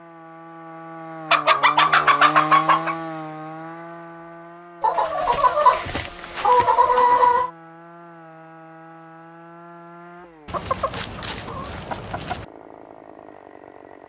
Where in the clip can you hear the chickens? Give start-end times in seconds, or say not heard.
1.3-3.0, 4.8-7.5, 10.4-12.4.